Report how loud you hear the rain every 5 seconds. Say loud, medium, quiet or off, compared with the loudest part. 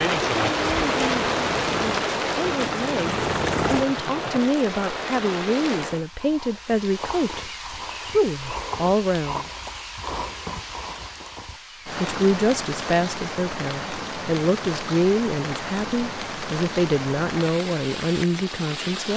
loud, medium, medium, medium.